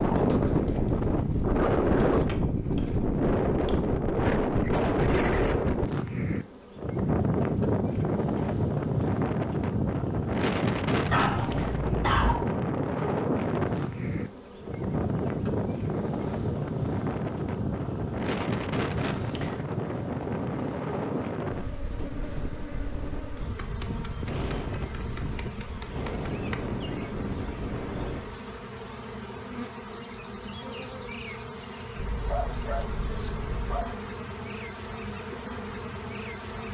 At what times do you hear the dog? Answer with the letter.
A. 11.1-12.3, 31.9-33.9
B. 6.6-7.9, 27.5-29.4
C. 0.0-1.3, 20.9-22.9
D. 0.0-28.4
A.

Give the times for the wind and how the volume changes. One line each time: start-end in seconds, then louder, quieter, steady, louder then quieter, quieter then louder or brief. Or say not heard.
0.0-28.4 quieter.